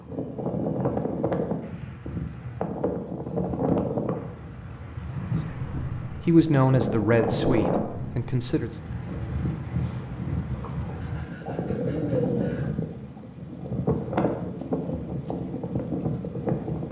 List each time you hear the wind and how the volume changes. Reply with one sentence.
The wind can be heard from 0.0 to 16.8 s, at a steady volume.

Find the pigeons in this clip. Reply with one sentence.
The pigeons can be heard from 11.0 to 12.7 s.